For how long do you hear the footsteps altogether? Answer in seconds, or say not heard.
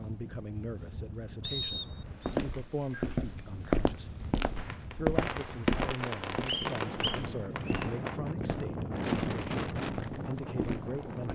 9 s.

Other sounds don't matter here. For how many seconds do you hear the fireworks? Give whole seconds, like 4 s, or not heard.
4 s.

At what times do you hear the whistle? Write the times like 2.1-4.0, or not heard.
1.4-2.3, 6.5-7.8.